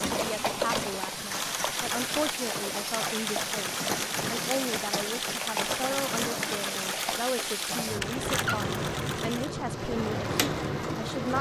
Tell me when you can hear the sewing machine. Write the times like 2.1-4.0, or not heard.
0.0-11.3.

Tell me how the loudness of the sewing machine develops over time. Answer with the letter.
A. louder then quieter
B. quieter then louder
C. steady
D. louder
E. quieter
C.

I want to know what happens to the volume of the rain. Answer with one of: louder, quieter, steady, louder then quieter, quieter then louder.
steady.